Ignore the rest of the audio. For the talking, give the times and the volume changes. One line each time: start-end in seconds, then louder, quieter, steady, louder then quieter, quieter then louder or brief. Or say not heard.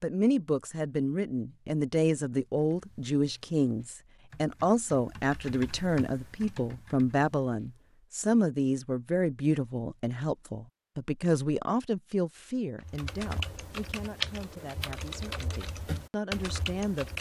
0.0-17.1 quieter.